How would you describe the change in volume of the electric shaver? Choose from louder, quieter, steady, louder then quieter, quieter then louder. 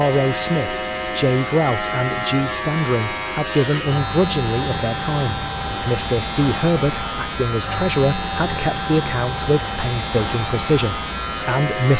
steady.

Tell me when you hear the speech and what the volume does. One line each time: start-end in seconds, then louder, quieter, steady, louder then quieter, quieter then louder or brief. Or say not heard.
0.0-11.9 steady.